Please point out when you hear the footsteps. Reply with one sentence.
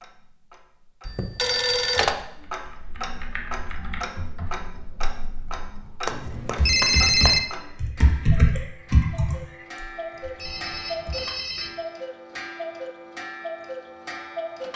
The footsteps can't be heard in this clip.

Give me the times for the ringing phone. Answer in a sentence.
You can hear the ringing phone from 1.1 to 2.1 s, from 6.0 to 7.4 s and from 10.3 to 11.7 s.